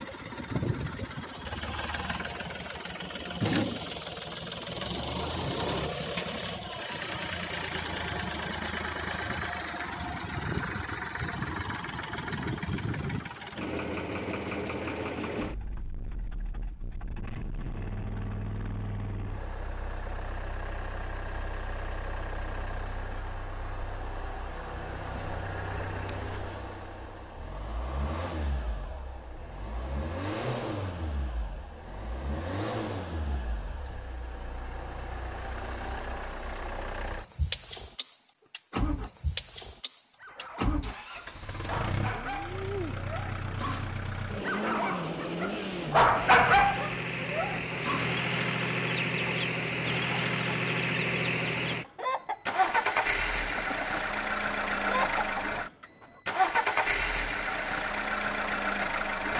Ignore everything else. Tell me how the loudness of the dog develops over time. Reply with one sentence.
The volume of the dog goes up.